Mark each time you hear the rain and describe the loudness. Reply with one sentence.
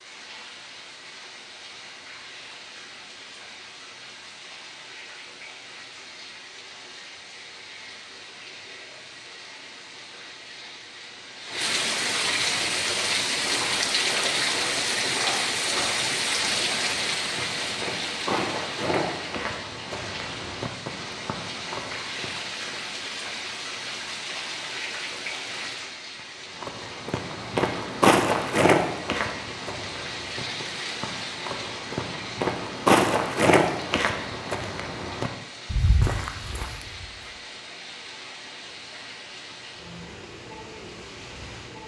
You can hear the rain from 0.0 to 41.8 s, getting louder then quieter.